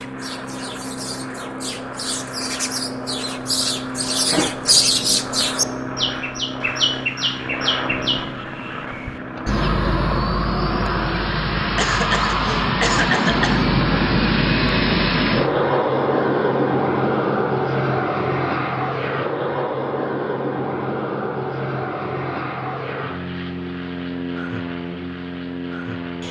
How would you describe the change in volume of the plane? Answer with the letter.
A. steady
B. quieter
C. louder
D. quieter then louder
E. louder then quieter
E.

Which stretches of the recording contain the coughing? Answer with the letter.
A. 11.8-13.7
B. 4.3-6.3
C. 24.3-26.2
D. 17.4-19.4
A.